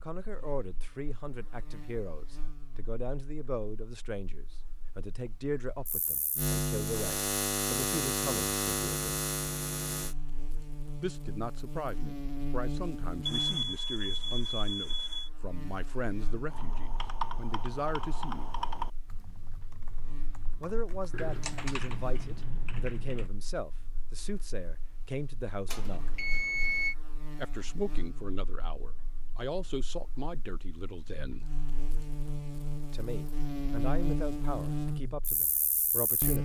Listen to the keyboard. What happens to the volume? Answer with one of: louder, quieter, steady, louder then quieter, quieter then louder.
quieter then louder.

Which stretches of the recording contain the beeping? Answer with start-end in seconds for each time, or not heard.
13.2-15.3, 25.6-26.9.